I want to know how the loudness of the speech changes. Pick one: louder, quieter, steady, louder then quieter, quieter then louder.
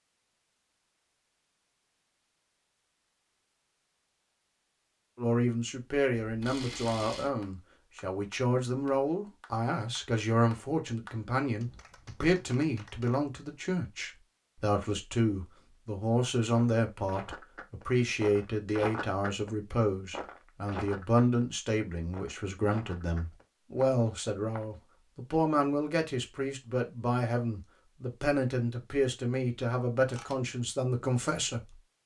steady.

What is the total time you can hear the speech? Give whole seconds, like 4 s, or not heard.
27 s.